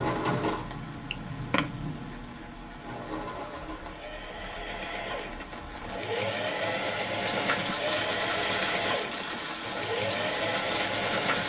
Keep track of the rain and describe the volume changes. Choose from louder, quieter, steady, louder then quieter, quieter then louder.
louder.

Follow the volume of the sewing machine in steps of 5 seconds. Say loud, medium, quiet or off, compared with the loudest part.
medium, loud, loud.